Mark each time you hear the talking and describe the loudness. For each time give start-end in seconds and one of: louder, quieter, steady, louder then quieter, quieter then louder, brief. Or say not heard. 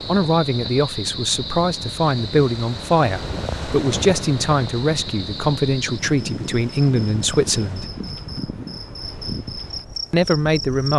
0.1-7.9 steady
10.1-10.9 brief.